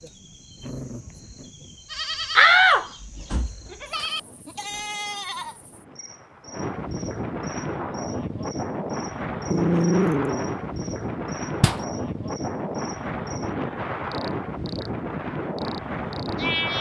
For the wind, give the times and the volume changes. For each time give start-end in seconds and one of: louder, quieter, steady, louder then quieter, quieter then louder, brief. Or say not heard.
0.0-16.7 louder.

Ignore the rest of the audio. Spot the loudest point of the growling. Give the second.
10 s.